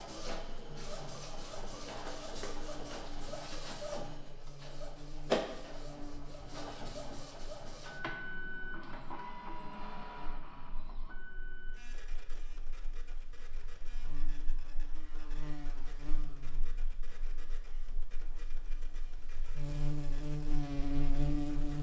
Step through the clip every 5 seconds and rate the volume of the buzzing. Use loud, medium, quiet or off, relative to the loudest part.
quiet, quiet, quiet, medium, loud.